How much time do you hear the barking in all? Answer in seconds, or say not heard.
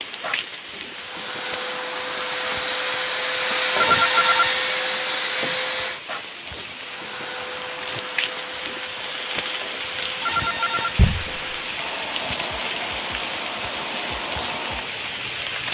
not heard.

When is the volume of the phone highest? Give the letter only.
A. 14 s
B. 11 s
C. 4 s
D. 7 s
C.